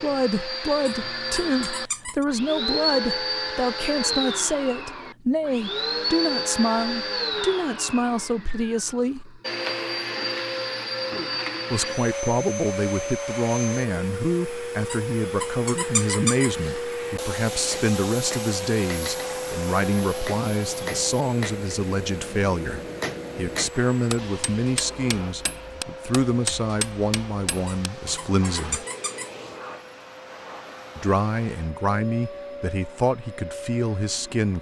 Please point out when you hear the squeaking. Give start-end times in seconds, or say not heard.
0.8-2.2, 14.9-16.8, 27.6-29.6.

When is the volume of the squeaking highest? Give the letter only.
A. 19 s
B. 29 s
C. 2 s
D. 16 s
D.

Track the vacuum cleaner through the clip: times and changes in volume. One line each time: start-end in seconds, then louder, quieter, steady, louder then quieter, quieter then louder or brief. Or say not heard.
0.0-34.5 quieter.